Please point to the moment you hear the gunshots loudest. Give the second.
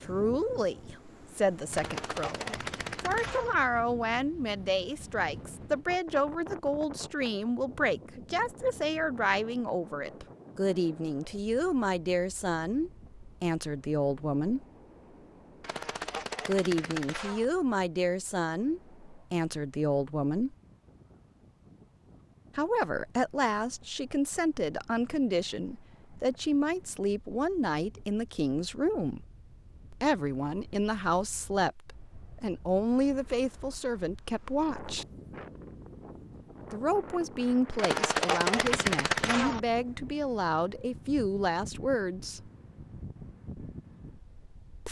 38 s.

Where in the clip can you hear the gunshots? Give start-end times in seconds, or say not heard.
1.7-3.5, 15.6-17.4, 37.8-39.6.